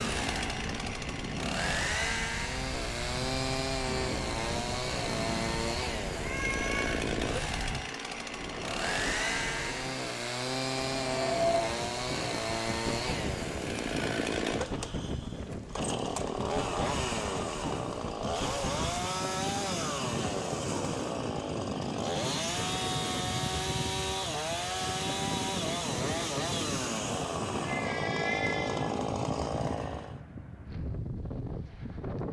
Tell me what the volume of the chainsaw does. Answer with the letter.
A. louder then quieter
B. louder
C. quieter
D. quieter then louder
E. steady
E.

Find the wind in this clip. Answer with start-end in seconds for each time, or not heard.
0.0-32.2.